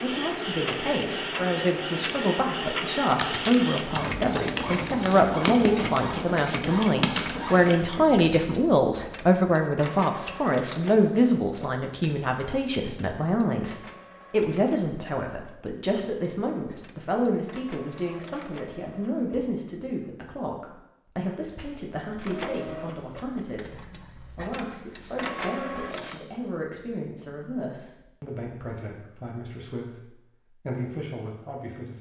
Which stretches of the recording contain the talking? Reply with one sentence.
You can hear the talking from 0.0 to 31.9 s.